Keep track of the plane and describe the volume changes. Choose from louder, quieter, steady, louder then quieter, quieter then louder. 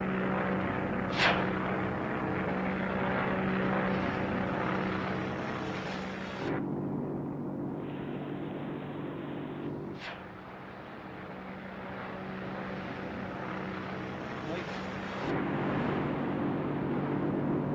quieter then louder.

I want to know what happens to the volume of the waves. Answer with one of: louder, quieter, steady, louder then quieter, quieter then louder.
louder.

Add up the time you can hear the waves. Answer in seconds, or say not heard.
10 s.